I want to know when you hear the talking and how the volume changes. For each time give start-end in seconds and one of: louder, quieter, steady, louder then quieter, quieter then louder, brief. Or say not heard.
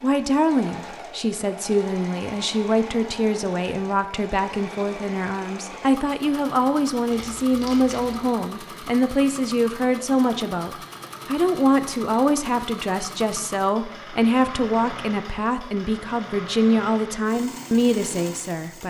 0.0-18.8 steady.